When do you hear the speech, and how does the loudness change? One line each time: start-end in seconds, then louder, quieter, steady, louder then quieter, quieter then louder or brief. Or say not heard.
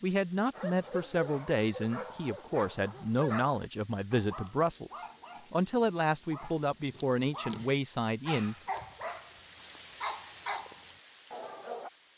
0.0-8.6 steady.